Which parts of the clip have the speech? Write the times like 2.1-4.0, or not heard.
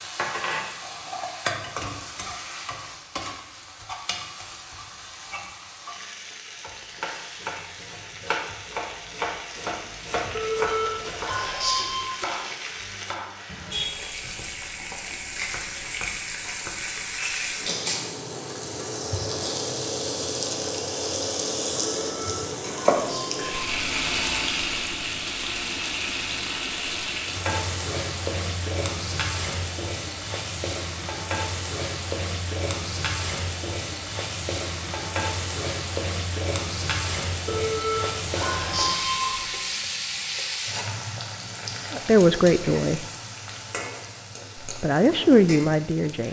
41.9-43.0, 44.6-46.2.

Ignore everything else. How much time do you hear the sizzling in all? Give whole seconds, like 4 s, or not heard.
46 s.